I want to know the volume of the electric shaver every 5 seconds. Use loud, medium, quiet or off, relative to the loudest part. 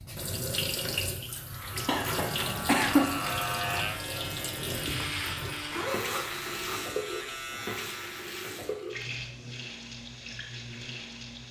loud, loud, off.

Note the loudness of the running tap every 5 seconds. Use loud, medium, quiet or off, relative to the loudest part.
loud, loud, medium.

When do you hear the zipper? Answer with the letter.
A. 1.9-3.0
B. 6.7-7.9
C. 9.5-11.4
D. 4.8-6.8
D.